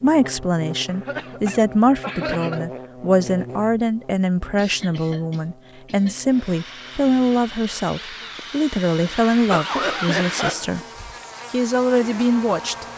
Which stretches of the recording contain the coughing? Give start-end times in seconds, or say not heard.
0.8-2.6, 4.5-6.2, 9.0-10.8.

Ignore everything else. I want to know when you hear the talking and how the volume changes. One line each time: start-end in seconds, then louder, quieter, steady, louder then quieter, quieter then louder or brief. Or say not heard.
0.0-10.8 steady
11.5-12.8 brief.